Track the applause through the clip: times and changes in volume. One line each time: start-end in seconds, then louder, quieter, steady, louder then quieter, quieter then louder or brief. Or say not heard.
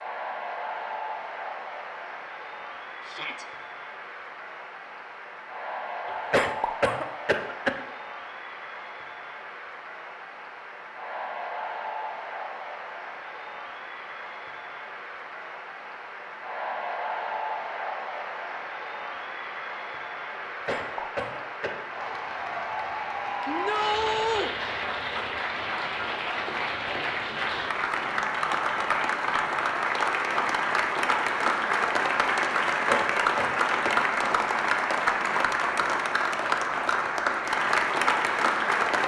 0.0-39.0 louder.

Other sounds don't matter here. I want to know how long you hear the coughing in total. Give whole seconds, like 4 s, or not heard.
4 s.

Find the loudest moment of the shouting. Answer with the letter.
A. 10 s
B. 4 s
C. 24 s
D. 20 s
C.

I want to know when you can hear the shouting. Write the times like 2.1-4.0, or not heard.
3.0-3.5, 23.4-24.5.